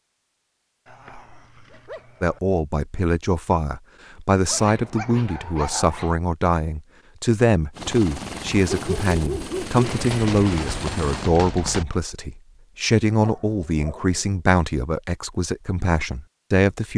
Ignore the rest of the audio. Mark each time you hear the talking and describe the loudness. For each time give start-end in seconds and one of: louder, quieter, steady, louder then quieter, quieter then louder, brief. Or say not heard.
2.2-16.9 steady.